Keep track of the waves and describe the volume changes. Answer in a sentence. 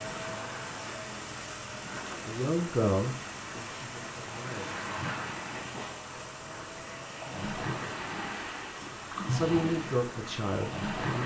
The volume of the waves goes up.